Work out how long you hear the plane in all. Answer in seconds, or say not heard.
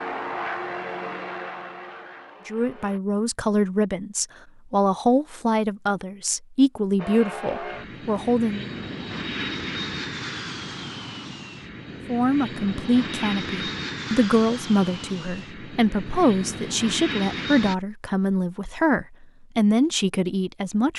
14 s.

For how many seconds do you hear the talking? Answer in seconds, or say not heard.
15 s.